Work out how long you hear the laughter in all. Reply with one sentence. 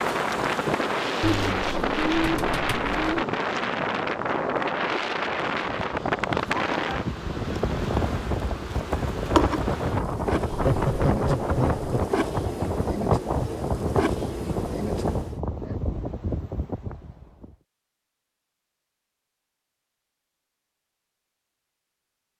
The laughter can be heard for 2 seconds in total.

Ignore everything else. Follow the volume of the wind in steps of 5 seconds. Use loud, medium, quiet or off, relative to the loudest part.
loud, loud, loud, medium, off.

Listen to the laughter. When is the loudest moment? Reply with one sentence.
The loudest moment of the laughter is at 11 seconds.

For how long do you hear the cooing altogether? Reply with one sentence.
You can hear the cooing for 2 seconds altogether.